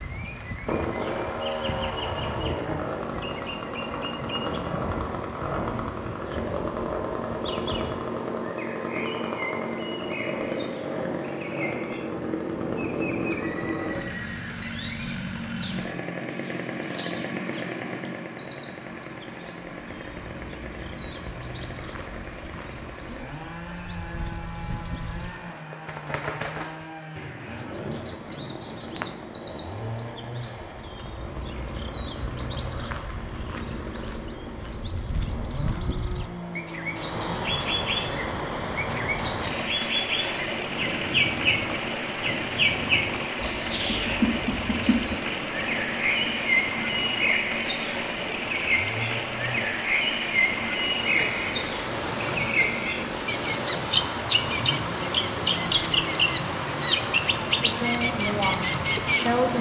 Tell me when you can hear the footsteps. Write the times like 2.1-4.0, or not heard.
not heard.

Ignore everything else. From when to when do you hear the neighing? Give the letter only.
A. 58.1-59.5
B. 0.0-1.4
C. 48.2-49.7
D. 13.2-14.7
D.